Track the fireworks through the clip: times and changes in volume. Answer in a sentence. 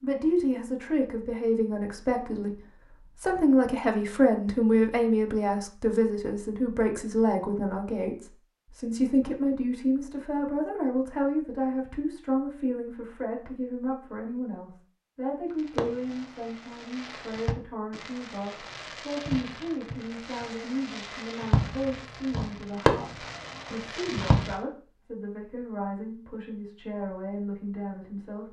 You can hear the fireworks from 15.7 to 24.6 s, getting louder.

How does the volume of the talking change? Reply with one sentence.
The loudness of the talking goes down.